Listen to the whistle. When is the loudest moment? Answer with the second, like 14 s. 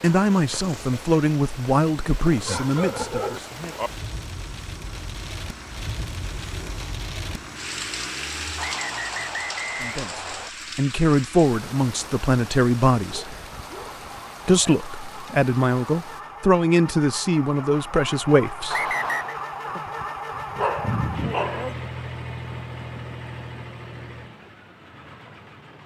19 s.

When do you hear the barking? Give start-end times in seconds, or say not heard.
2.5-3.9, 13.1-14.8, 19.9-21.8.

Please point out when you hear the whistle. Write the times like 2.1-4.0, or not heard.
8.6-10.5, 18.7-19.4.